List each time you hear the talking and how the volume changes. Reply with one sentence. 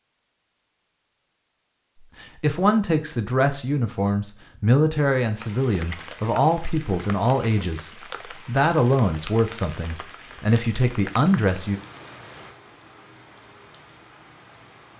You can hear the talking from 2.2 to 11.8 s, at a steady volume.